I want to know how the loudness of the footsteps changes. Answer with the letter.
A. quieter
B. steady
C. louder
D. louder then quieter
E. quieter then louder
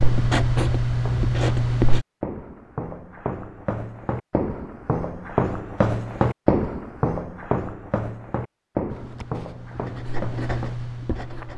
D.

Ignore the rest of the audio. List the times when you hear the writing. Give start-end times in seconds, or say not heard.
0.0-2.0, 8.9-11.5.